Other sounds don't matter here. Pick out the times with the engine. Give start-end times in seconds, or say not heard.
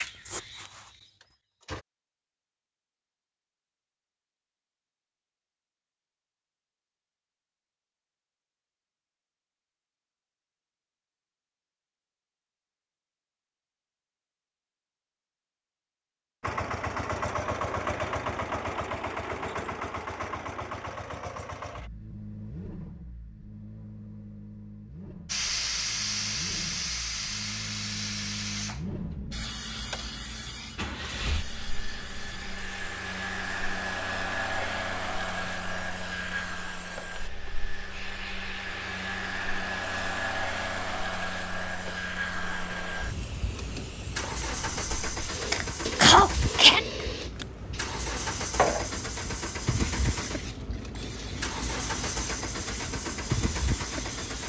0.0-1.9, 16.4-54.4.